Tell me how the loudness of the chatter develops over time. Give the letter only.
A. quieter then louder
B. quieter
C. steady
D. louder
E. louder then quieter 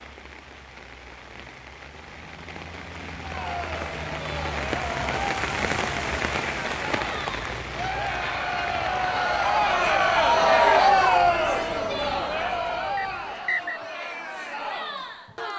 E.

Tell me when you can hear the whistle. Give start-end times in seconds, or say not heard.
12.9-13.8.